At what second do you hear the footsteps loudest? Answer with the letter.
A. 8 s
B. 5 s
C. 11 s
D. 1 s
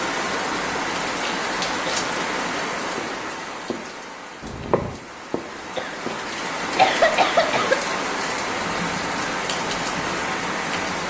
B.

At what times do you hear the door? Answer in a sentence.
You can't hear the door here.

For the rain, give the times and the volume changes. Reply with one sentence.
The rain can be heard from 0.0 to 11.0 s, getting quieter then louder.